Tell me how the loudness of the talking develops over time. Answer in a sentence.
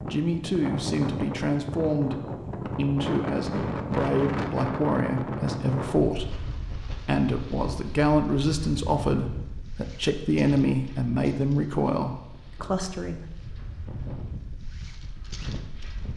The volume of the talking stays about the same.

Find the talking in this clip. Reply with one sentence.
You can hear the talking from 0.1 to 13.2 s.